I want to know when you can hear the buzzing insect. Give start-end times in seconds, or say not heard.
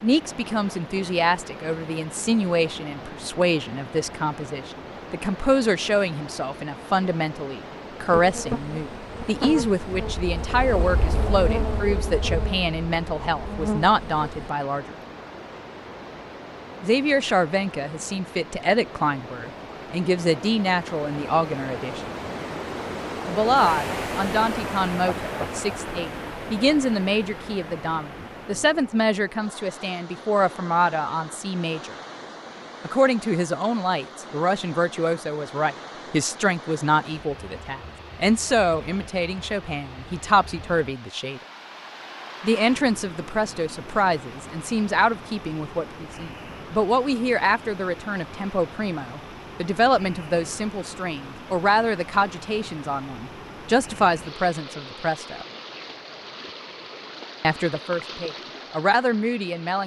8.1-14.5.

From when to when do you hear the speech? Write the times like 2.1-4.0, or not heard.
0.0-14.9, 16.8-22.0, 23.2-31.9, 32.9-41.4, 42.4-55.5, 57.4-59.8.